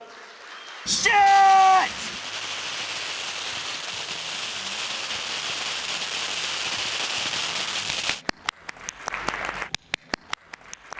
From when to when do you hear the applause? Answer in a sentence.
You can hear the applause from 0.0 to 10.9 s.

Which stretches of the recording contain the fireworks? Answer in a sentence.
You can hear the fireworks from 1.0 to 8.2 s.